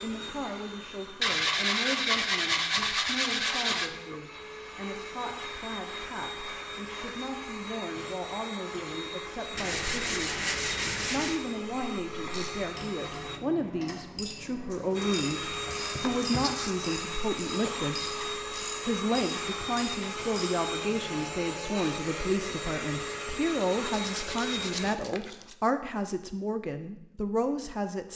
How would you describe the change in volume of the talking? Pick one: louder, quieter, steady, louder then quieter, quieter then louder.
louder.